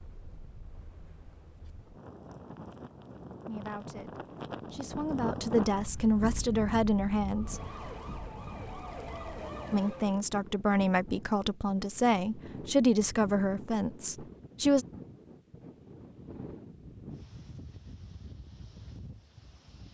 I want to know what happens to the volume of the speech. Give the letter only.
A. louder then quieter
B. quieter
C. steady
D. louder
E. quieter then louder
D.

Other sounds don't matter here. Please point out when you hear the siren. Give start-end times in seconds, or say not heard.
7.3-10.2.